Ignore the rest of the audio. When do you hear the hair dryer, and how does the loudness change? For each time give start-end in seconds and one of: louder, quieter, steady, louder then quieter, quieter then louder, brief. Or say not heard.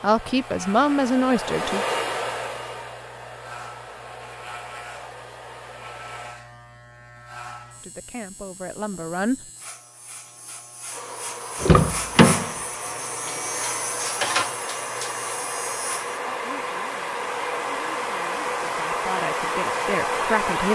0.0-6.3 louder then quieter
10.8-20.7 louder.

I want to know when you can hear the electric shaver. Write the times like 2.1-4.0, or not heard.
0.0-16.2.